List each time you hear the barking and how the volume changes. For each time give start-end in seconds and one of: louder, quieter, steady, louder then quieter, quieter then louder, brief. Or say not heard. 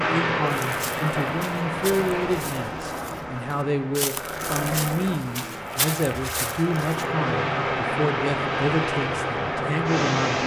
not heard.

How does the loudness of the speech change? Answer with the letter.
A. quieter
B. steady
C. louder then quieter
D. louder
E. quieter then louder
B.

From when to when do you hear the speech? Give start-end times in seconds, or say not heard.
0.0-10.4.